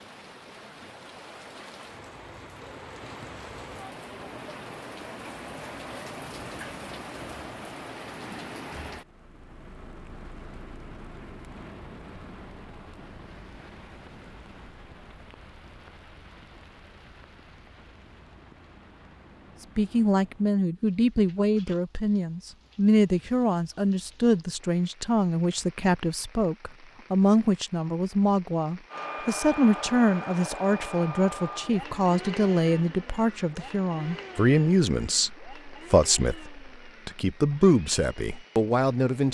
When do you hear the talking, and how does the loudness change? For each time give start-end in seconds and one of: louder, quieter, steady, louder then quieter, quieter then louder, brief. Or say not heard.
19.8-39.2 steady.